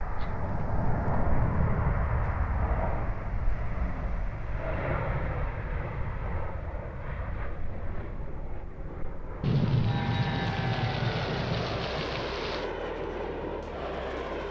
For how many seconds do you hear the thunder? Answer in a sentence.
The thunder can be heard for 3 seconds in total.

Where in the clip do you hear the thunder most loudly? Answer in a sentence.
The volume of the thunder peaks at 10 seconds.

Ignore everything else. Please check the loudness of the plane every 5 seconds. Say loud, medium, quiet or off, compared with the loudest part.
loud, medium, loud.